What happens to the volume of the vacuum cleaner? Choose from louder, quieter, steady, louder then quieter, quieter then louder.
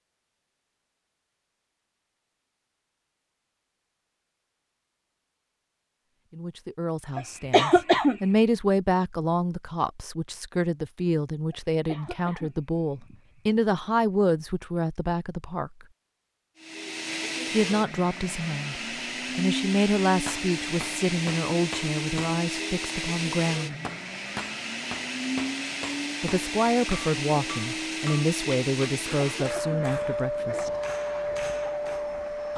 steady.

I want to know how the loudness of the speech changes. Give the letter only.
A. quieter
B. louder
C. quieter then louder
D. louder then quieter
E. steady
E.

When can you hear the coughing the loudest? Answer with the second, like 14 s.
8 s.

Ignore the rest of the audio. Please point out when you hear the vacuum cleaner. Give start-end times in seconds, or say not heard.
16.6-32.5.